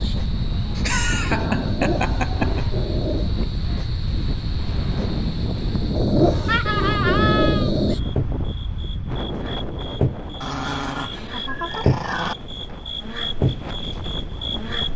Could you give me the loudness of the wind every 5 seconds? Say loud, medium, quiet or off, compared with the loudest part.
loud, loud, medium.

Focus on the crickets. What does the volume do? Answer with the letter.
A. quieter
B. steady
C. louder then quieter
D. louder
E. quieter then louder
D.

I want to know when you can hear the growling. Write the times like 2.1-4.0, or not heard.
1.6-3.3, 6.0-8.0, 10.4-12.3.